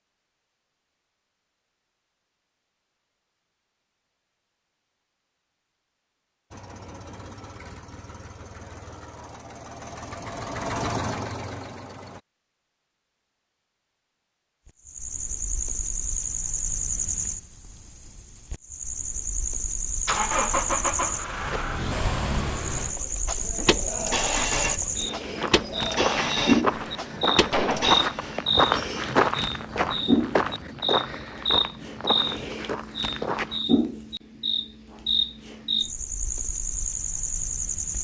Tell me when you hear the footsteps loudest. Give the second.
29 s.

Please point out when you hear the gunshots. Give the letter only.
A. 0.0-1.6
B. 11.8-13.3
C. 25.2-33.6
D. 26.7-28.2
D.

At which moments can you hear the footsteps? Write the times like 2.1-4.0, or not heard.
25.2-33.6.